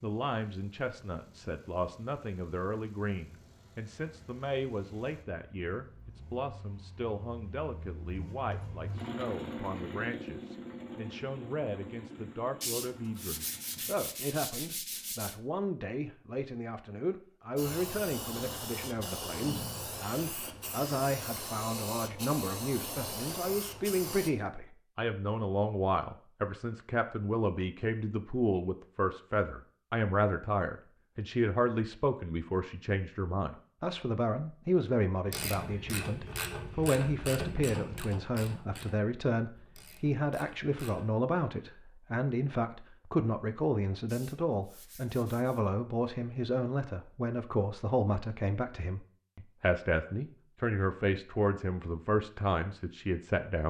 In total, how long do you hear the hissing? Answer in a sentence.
You can hear the hissing for 7 seconds altogether.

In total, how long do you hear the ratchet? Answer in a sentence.
You can hear the ratchet for 6 seconds altogether.